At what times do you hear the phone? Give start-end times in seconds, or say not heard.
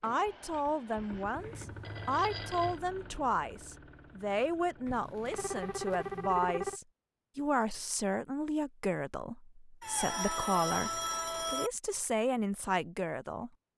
1.4-2.8, 4.8-6.8, 9.8-11.7.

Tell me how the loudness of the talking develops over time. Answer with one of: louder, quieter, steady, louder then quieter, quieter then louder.
steady.